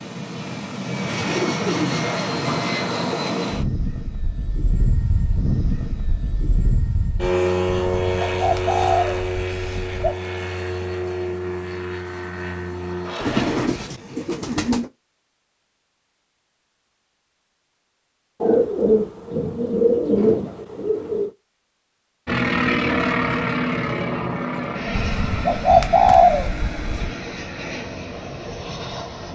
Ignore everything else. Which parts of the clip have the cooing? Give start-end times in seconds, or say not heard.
1.1-2.8, 7.9-10.2, 13.2-14.9, 18.4-21.3, 24.9-27.1.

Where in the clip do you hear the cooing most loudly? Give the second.
26 s.